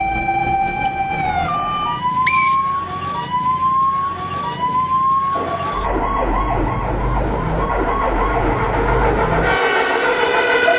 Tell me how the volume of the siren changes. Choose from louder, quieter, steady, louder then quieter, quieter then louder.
steady.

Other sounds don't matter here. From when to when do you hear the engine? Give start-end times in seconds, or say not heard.
4.3-10.7.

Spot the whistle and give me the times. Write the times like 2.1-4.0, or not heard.
1.8-2.7.